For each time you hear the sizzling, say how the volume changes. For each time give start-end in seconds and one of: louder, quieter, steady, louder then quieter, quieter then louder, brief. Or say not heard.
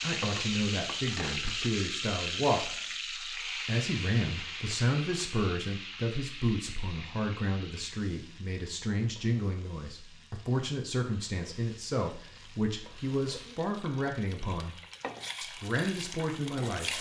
0.0-16.9 quieter then louder.